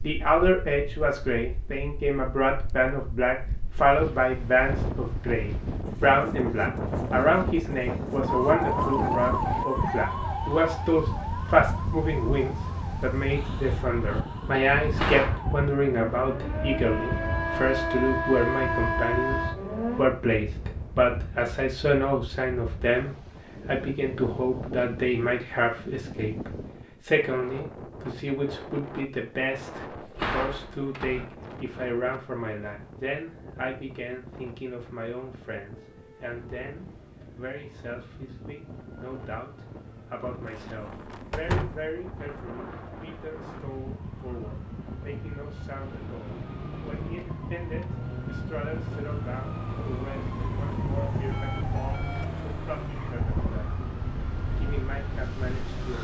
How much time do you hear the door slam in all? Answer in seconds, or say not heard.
3 s.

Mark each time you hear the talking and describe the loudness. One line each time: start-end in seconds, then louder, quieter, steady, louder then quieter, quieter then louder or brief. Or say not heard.
0.0-53.8 quieter
54.5-55.9 brief.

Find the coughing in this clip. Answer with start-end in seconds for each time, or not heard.
not heard.